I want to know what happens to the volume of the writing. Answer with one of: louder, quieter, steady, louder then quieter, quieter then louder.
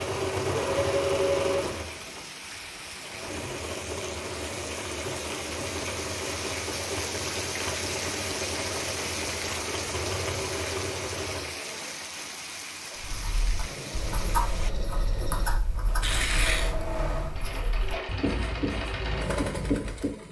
quieter then louder.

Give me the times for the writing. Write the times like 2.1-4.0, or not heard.
12.9-20.2.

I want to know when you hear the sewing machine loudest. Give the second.
1 s.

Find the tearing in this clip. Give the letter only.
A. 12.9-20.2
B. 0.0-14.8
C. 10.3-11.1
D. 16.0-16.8
D.